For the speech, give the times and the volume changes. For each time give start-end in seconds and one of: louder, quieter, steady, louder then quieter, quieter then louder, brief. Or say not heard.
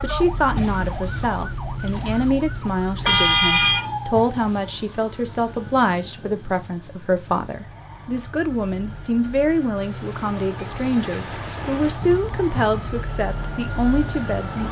0.0-14.6 steady.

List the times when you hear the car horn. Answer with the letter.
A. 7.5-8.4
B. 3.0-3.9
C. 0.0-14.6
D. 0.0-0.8
B.